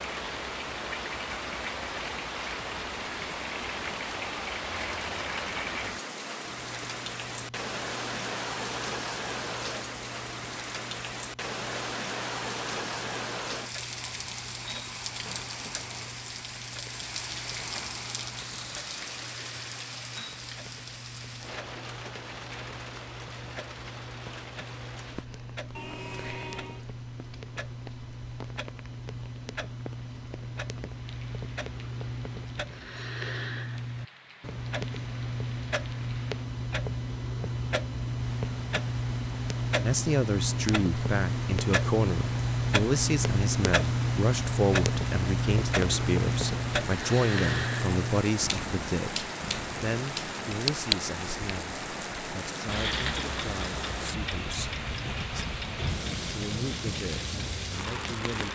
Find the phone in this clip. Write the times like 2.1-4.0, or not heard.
not heard.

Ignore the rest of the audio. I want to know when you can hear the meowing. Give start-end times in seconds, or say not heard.
25.8-26.9.